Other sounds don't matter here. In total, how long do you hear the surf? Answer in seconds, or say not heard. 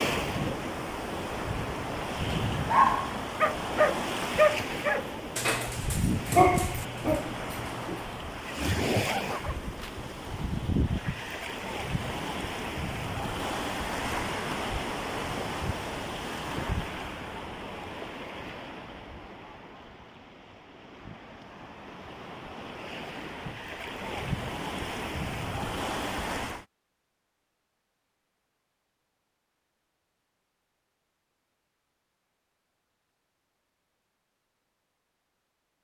27 s.